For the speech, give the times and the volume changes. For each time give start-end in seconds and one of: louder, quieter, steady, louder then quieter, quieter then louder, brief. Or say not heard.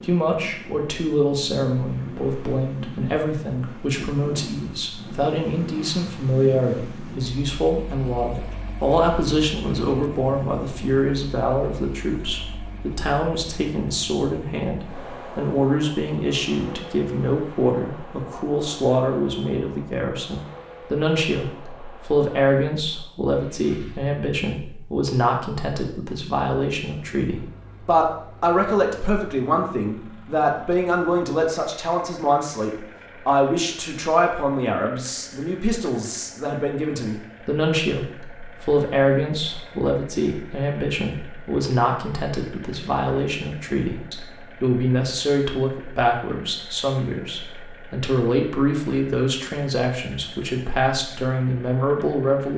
0.0-52.5 steady.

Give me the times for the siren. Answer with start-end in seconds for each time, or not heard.
not heard.